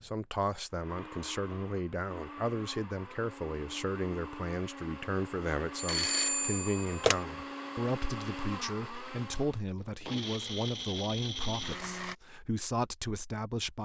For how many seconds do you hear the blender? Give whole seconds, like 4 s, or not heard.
12 s.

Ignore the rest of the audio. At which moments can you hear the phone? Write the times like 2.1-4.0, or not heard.
5.8-7.2.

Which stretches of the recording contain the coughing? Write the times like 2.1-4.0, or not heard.
not heard.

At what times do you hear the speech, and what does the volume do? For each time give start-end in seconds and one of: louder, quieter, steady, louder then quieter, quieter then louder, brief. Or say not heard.
0.0-13.8 steady.